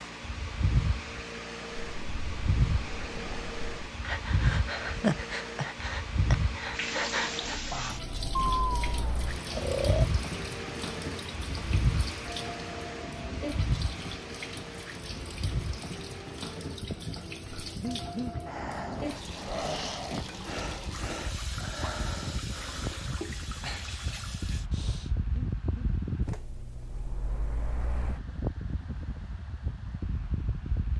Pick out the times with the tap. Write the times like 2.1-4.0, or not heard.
6.7-24.7.